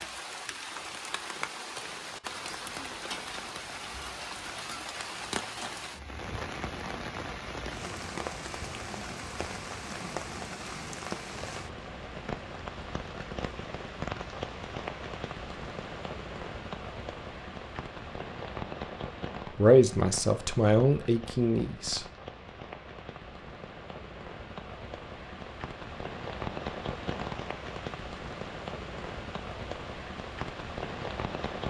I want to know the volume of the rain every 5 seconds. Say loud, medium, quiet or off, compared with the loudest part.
loud, loud, loud, loud, medium, loud, loud.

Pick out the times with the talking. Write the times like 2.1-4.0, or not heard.
19.6-22.1.